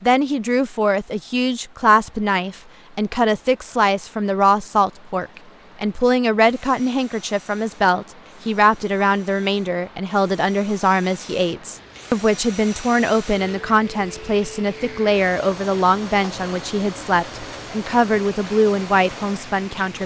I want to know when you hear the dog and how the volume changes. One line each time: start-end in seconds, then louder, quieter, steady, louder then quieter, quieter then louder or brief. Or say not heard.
not heard.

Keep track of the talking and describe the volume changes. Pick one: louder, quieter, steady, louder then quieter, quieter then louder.
steady.